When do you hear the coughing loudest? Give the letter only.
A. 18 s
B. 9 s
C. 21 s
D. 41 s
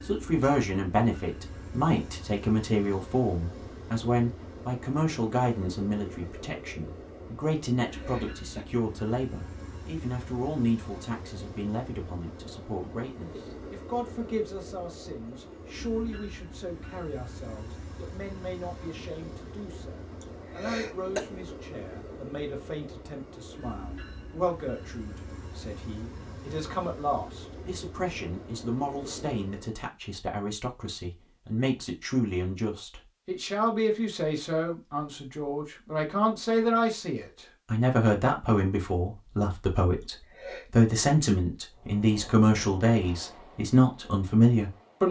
C.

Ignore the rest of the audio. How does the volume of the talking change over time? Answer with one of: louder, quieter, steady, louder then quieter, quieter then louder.
quieter then louder.